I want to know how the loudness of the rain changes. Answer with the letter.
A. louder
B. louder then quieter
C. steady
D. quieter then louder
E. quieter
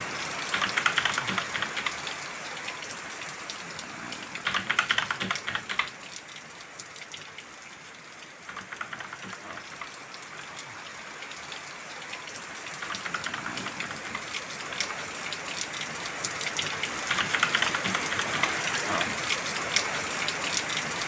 D.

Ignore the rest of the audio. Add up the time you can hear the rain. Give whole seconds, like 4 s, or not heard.
21 s.